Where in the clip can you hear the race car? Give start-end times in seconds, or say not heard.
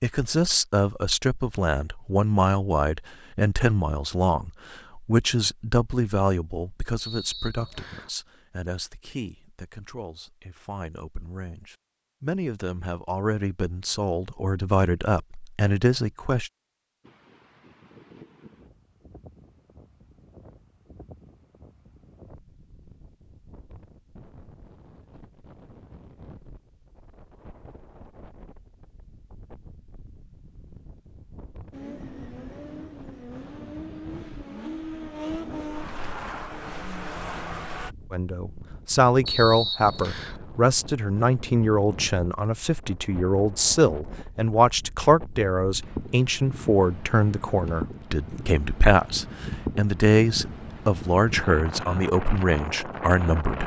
31.7-38.0.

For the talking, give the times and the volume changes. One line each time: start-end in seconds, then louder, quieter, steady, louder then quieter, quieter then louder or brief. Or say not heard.
0.0-16.5 quieter then louder
38.1-53.6 steady.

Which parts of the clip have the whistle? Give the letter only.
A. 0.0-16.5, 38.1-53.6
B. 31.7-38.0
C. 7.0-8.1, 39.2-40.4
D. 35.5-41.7
C.